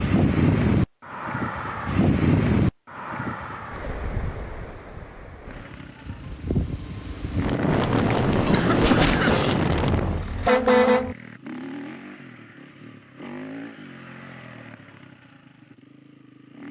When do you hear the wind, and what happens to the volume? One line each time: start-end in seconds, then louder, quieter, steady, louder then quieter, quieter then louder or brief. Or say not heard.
0.0-10.2 quieter then louder.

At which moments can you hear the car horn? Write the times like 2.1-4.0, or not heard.
9.8-11.2.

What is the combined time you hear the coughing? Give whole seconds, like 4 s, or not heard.
2 s.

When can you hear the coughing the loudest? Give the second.
9 s.